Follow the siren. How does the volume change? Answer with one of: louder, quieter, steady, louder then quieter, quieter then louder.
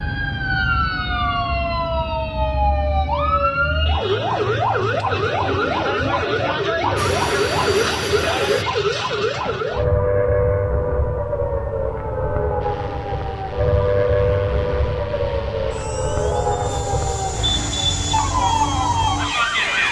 steady.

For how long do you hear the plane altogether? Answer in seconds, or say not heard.
9 s.